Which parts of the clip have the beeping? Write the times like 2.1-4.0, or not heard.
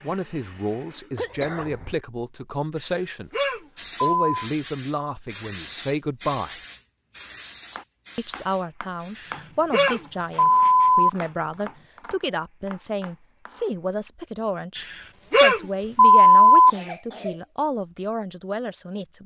2.8-4.5, 9.2-11.1, 14.8-16.7.